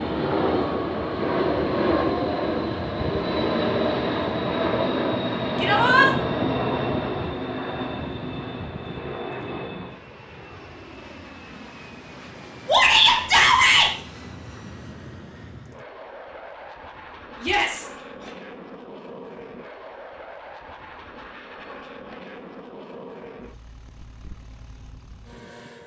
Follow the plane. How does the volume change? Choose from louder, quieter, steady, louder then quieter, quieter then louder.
quieter.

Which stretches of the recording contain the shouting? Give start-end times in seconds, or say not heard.
5.6-6.0, 12.7-13.9, 17.4-18.3.